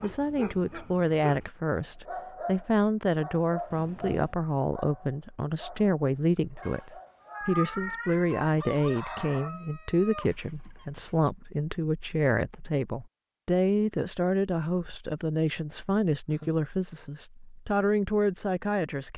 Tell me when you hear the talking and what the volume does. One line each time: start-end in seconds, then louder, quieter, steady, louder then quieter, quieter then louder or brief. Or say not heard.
0.0-19.1 steady.